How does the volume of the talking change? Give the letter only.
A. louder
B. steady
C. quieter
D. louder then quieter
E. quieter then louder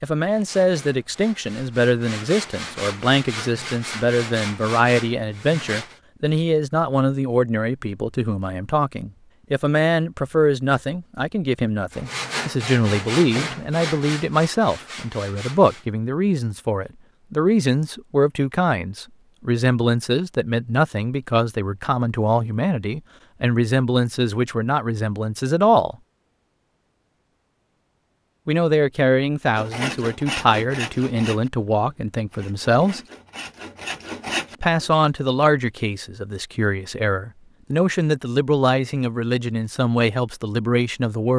B.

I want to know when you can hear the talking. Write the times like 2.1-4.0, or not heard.
0.0-25.9, 28.4-33.0, 34.6-41.3.